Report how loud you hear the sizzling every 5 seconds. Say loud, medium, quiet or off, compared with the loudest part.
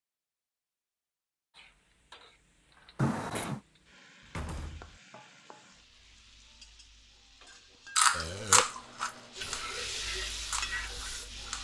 quiet, medium, loud.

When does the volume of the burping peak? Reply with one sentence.
The volume of the burping peaks at 3 seconds.